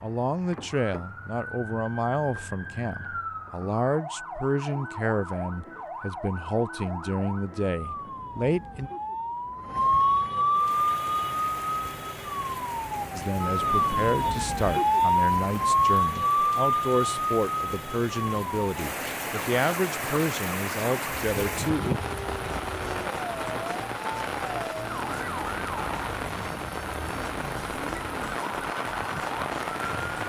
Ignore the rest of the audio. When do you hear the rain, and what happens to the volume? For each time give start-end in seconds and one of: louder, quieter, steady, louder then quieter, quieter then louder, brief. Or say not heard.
10.5-30.2 louder.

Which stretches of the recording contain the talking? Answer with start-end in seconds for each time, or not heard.
0.0-8.9, 13.2-21.9.